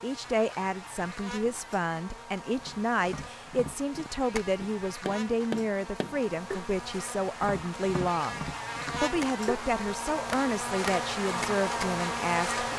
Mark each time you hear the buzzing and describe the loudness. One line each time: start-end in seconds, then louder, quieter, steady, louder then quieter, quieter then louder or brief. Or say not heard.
0.0-12.7 louder.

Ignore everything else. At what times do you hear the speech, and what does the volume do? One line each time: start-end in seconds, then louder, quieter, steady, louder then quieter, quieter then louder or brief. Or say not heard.
0.0-12.7 steady.